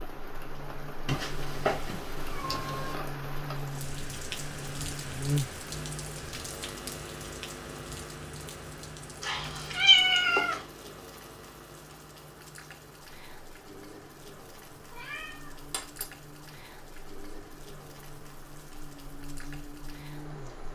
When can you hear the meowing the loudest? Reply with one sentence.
The volume of the meowing peaks at 10 seconds.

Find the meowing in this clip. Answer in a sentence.
The meowing can be heard from 1.1 to 3.0 s, from 9.2 to 10.6 s and from 14.9 to 16.1 s.